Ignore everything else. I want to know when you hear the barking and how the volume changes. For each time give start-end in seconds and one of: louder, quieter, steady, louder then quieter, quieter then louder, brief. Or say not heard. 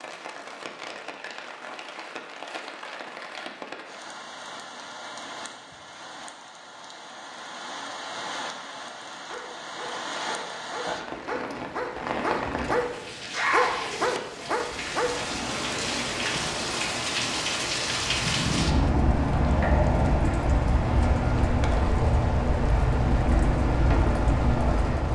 9.2-15.2 louder.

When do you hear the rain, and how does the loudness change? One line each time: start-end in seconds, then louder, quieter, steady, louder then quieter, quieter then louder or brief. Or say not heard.
0.0-25.0 louder.